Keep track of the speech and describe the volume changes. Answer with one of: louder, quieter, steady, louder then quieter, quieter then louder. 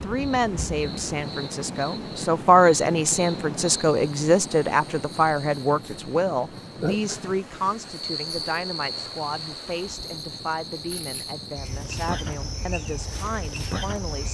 quieter.